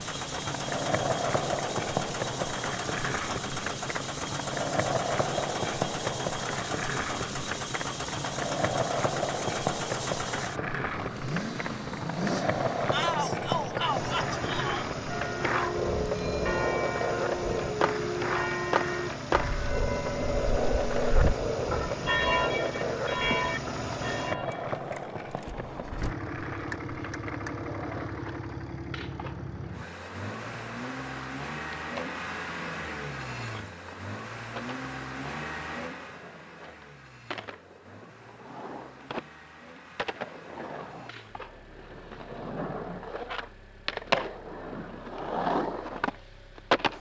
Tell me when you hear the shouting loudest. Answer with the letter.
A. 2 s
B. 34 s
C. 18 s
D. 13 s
D.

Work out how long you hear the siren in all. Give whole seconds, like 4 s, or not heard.
not heard.